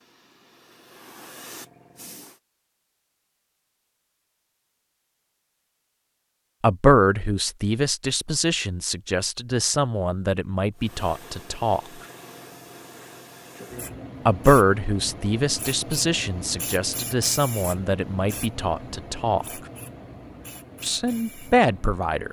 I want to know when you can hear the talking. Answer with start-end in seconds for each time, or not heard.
6.6-11.8, 14.2-19.4, 20.8-22.2.